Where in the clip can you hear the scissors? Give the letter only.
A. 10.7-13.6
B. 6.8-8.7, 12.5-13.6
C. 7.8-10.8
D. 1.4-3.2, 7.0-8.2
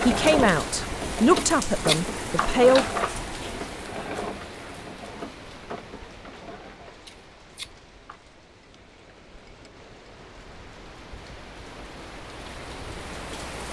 D.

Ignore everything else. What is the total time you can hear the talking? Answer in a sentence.
You can hear the talking for 3 seconds altogether.